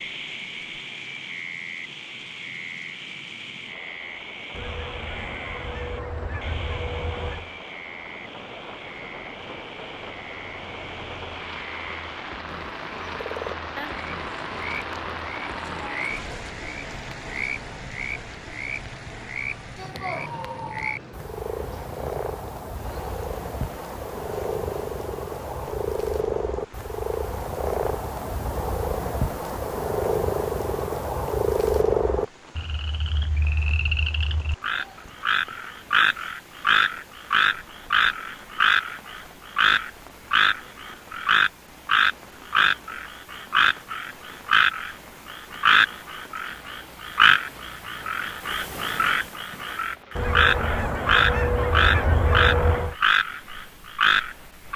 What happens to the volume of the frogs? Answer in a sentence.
The volume of the frogs goes up.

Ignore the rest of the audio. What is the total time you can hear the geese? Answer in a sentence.
The geese can be heard for 6 seconds in total.